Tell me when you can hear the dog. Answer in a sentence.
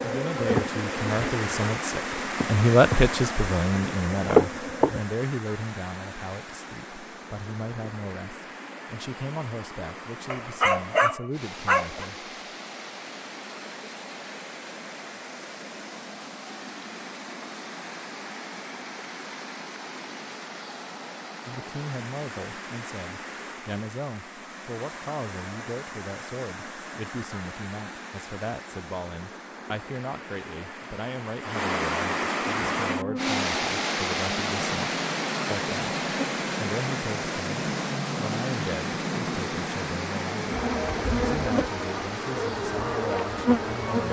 The dog can be heard from 10.3 to 12.1 s.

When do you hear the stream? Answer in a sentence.
You can hear the stream from 0.0 to 44.0 s.